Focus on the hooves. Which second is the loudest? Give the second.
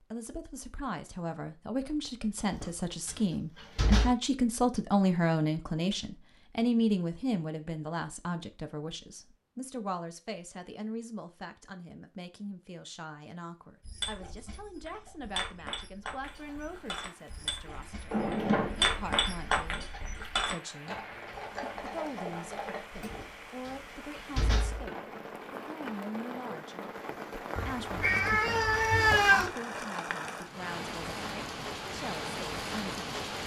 19 s.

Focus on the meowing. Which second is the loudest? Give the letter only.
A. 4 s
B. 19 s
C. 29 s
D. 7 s
C.